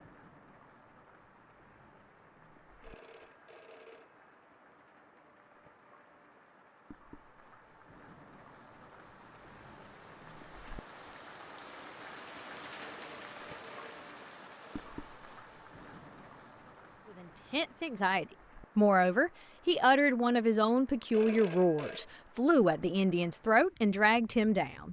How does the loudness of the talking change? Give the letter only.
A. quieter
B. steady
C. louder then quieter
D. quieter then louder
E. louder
B.